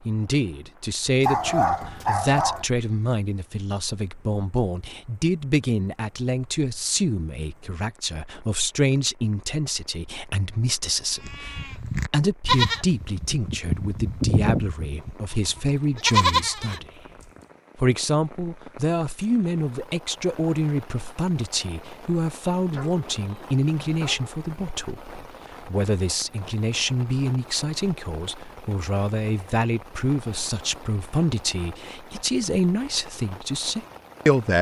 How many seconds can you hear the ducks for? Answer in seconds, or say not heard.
not heard.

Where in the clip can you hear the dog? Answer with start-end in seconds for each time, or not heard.
1.2-2.6, 22.7-24.4.